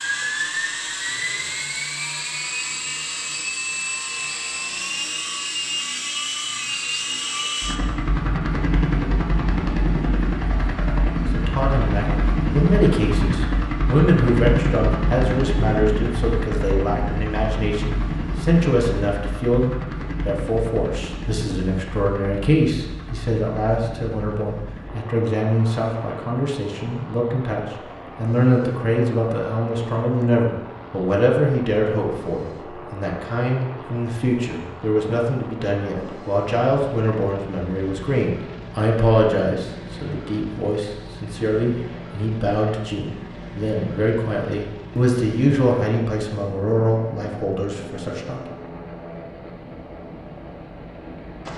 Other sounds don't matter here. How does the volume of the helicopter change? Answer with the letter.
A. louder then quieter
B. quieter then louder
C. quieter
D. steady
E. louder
C.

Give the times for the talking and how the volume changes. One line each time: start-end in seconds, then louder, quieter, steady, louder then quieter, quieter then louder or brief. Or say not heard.
11.3-48.5 steady.